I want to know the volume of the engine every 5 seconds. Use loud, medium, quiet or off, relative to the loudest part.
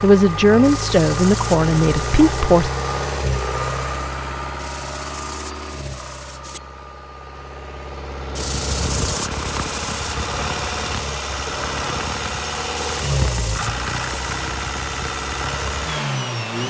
loud, medium, loud, loud.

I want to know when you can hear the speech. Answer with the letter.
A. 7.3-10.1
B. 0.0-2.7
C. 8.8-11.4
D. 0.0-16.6
B.